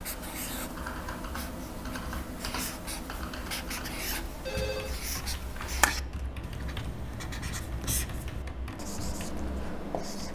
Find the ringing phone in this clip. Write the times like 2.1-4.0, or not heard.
4.0-4.9.